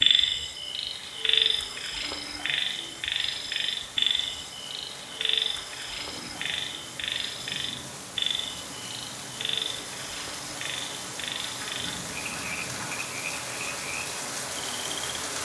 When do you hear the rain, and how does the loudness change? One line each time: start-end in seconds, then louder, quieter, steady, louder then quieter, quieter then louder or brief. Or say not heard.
0.0-15.4 louder.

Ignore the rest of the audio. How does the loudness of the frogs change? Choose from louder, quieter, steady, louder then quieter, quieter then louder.
quieter.